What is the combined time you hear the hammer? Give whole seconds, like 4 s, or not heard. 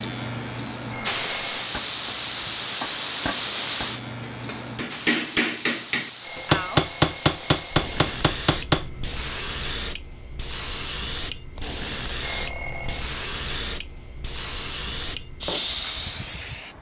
7 s.